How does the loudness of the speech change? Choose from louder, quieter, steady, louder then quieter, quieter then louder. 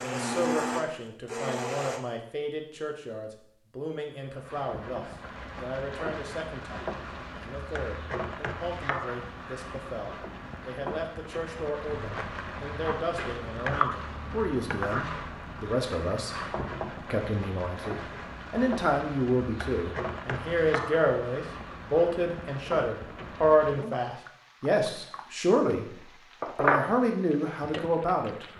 louder.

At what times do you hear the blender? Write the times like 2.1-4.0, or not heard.
0.0-2.0.